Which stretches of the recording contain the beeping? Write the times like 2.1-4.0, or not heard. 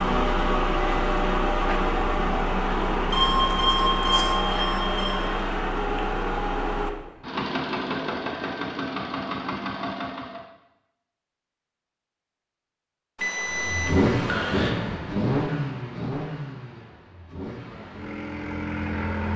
3.1-5.3, 13.2-14.7.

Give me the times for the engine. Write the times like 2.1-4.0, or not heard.
0.0-10.4, 13.5-19.3.